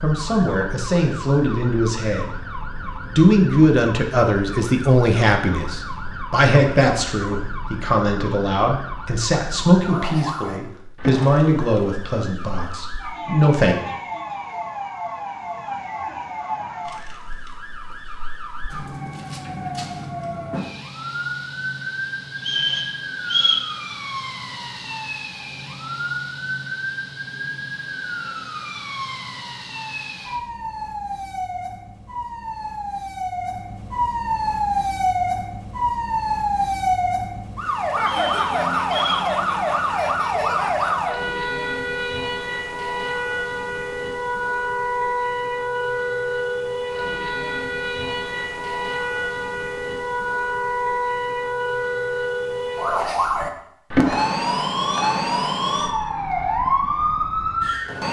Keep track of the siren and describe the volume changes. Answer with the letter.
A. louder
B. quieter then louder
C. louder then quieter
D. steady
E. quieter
A.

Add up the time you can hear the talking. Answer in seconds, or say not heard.
14 s.